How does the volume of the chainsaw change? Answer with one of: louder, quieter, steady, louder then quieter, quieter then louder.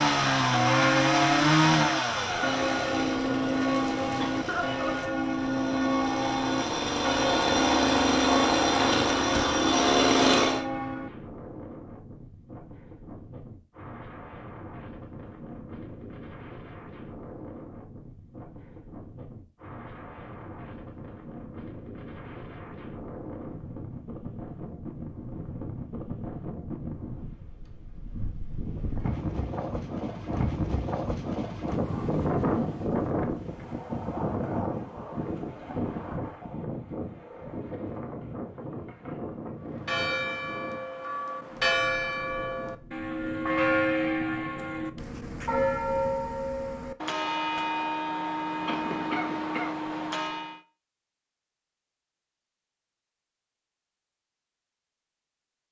quieter then louder.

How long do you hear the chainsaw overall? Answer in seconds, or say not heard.
11 s.